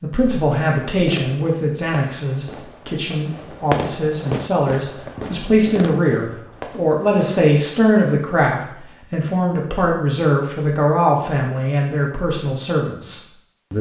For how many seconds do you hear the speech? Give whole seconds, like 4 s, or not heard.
14 s.